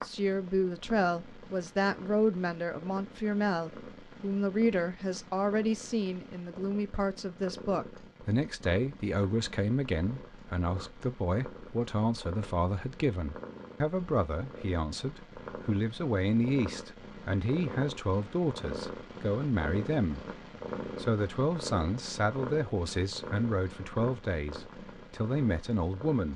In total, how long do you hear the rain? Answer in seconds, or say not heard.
not heard.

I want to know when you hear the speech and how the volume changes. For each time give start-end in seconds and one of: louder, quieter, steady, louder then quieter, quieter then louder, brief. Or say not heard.
0.0-26.3 steady.